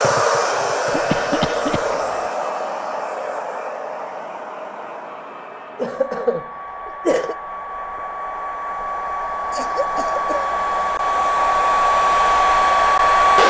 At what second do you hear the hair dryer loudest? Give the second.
13 s.